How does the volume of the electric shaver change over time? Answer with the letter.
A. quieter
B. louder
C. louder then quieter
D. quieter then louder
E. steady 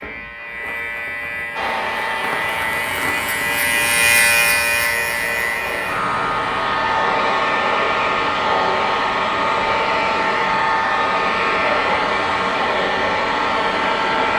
C.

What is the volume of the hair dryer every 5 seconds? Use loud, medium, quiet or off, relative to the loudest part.
medium, loud, loud.